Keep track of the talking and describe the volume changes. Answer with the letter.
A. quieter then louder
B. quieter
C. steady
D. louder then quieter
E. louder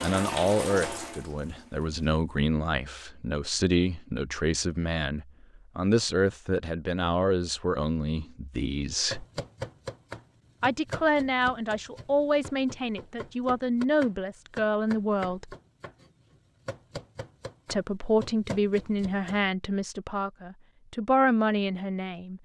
C.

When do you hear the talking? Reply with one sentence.
The talking can be heard from 0.0 to 9.2 s, from 10.6 to 15.6 s and from 17.7 to 22.4 s.